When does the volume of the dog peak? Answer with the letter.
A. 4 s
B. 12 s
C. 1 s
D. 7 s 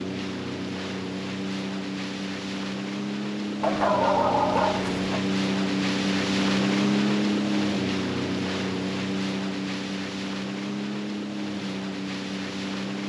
A.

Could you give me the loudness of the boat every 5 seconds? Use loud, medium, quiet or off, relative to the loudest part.
medium, loud, medium.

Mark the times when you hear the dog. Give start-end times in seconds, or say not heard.
3.6-5.2.